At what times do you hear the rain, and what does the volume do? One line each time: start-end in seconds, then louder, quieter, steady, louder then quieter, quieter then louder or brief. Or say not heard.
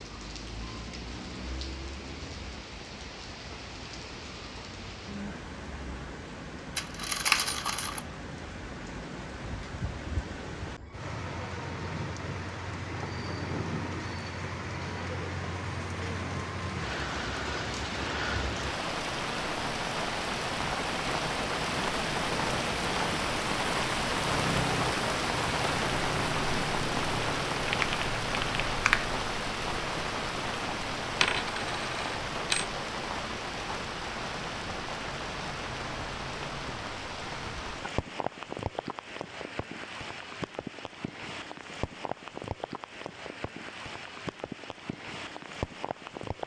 0.0-46.4 louder then quieter.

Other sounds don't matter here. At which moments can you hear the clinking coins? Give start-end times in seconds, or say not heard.
6.8-8.0, 31.2-32.6.